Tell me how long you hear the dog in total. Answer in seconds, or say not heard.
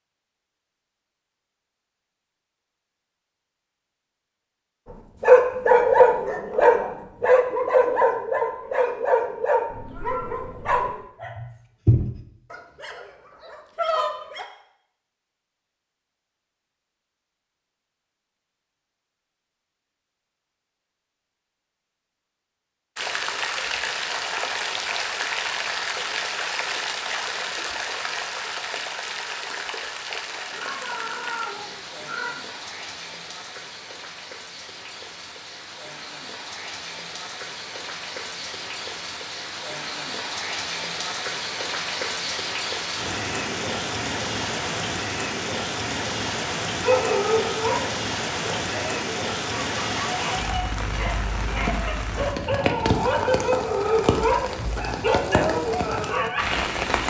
19 s.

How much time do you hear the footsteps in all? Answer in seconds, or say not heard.
not heard.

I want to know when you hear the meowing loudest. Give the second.
31 s.